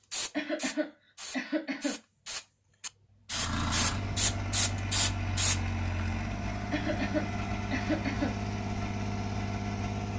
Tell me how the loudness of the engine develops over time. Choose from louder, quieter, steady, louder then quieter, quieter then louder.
steady.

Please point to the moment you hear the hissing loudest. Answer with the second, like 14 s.
5 s.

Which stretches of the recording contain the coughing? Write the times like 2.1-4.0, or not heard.
0.3-2.0, 6.7-8.3.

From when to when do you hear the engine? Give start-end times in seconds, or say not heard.
3.3-10.1.